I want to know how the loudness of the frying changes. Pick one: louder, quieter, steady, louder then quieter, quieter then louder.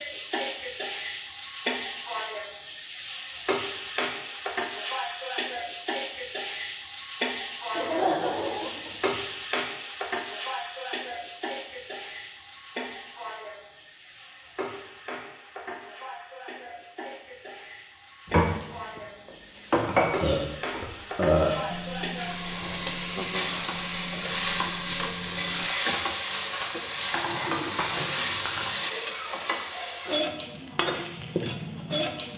quieter then louder.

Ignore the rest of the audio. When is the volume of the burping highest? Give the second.
21 s.